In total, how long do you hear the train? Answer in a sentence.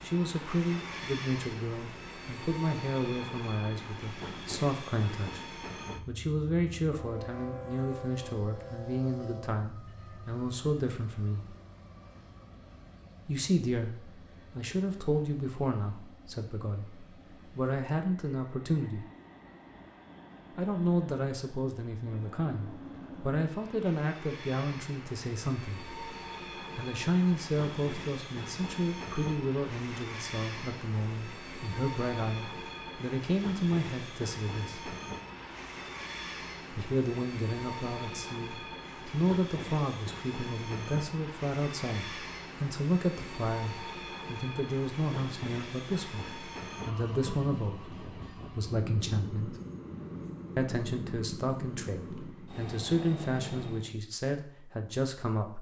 The train can be heard for 54 seconds in total.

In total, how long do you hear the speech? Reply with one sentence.
You can hear the speech for 49 seconds altogether.